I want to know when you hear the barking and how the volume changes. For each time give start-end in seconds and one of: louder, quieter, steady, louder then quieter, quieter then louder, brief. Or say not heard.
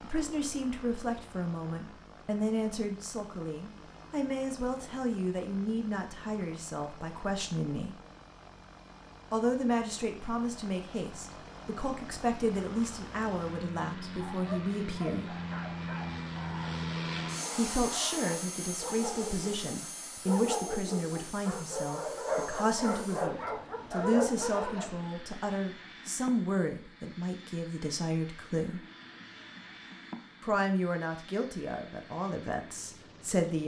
14.1-24.9 louder.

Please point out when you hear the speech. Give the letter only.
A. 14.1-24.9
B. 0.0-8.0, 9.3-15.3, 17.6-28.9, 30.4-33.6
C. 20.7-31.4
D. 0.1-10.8
B.